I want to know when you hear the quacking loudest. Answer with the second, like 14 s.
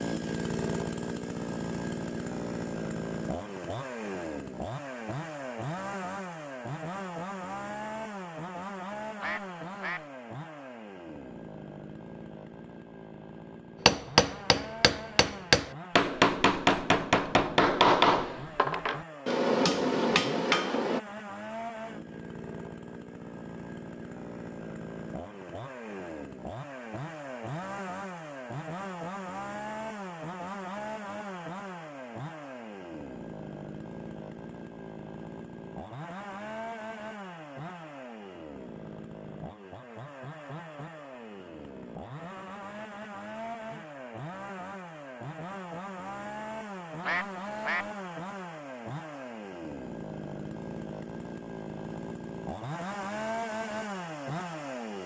47 s.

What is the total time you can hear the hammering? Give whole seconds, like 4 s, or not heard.
7 s.